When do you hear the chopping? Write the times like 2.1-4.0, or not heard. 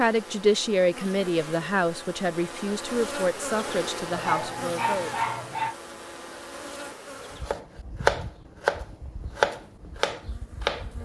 7.4-11.0.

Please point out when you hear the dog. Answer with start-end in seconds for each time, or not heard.
4.1-5.8.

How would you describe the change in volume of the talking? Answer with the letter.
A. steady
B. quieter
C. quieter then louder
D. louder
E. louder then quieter
B.